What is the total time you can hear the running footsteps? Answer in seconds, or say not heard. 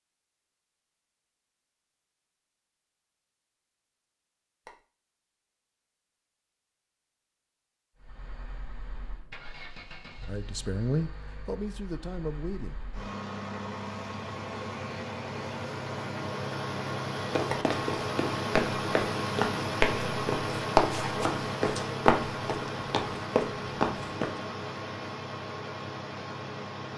7 s.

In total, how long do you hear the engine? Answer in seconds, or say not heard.
19 s.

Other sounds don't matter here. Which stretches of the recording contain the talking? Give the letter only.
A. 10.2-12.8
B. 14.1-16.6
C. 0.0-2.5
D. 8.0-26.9
A.